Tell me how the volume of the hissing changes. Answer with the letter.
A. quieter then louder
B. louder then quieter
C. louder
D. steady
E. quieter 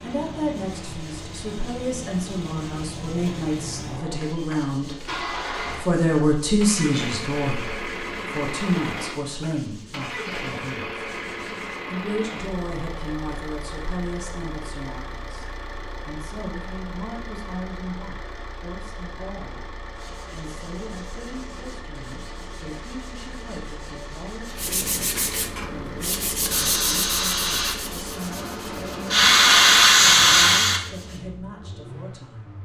A.